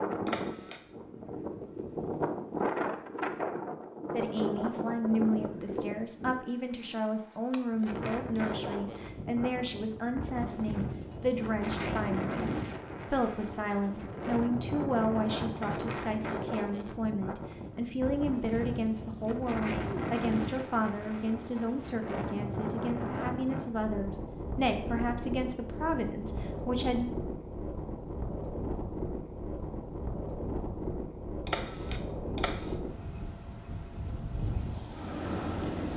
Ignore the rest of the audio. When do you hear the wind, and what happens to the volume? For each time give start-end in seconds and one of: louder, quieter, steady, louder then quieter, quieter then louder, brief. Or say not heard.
0.0-35.9 steady.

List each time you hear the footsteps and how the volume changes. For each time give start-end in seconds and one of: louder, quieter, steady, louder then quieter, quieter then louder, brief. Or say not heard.
not heard.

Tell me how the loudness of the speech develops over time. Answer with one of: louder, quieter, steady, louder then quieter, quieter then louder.
steady.